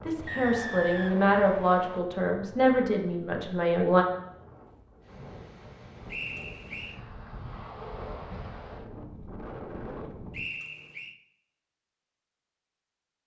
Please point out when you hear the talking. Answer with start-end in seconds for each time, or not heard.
0.1-4.0.